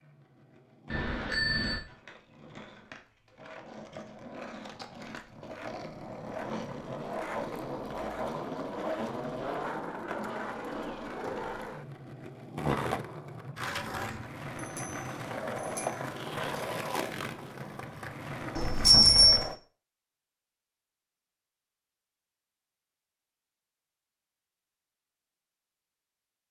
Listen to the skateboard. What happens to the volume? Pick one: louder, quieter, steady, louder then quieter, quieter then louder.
louder.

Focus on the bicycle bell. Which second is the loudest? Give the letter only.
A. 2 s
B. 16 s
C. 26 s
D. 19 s
D.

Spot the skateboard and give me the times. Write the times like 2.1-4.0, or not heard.
0.0-19.6.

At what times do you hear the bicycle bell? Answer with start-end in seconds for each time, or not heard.
0.8-1.8, 14.6-15.9, 18.6-19.4.